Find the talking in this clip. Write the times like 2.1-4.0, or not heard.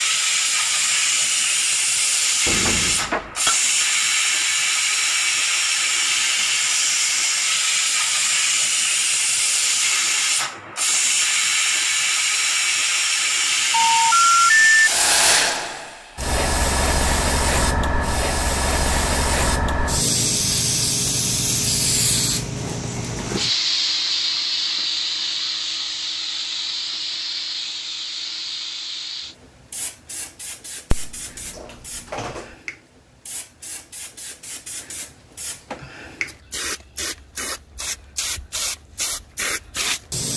not heard.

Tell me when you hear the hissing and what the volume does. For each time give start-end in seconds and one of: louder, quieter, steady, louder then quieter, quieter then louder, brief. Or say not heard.
0.0-40.3 quieter.